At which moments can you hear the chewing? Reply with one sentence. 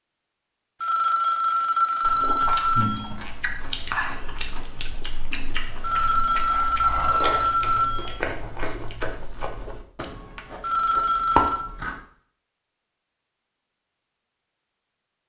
You can hear the chewing from 2.0 to 12.1 s.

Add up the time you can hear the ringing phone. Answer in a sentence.
You can hear the ringing phone for 6 seconds altogether.